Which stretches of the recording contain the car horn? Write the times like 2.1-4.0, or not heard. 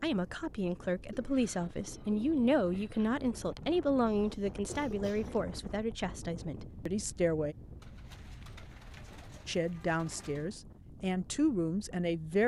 not heard.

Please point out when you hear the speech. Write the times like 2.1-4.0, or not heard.
0.0-7.5, 9.4-12.4.